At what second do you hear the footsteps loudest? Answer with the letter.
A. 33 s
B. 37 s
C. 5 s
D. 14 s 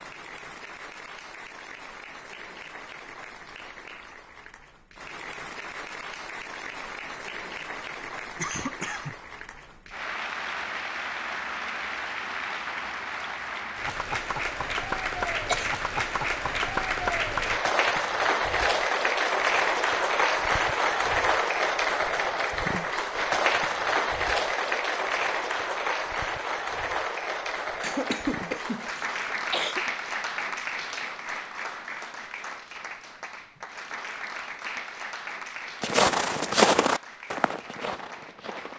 B.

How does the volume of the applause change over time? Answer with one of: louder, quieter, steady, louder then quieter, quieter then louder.
louder then quieter.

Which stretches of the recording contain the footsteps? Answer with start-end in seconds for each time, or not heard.
35.8-38.7.